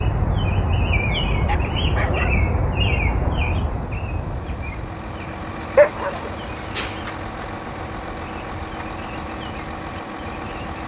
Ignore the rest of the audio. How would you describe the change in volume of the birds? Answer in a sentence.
The volume of the birds goes down.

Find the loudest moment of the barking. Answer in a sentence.
The volume of the barking peaks at 6 seconds.